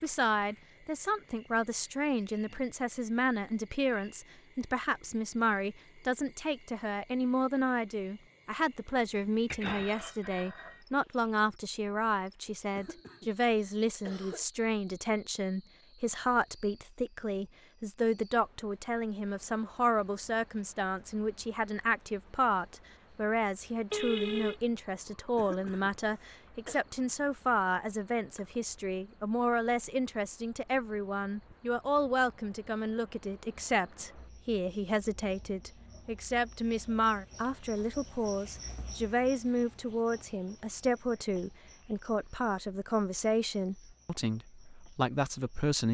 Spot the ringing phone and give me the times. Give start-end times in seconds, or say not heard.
9.5-10.8, 23.9-24.6.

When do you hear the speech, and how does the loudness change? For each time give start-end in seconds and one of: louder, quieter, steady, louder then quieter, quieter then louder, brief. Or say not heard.
0.0-45.8 steady.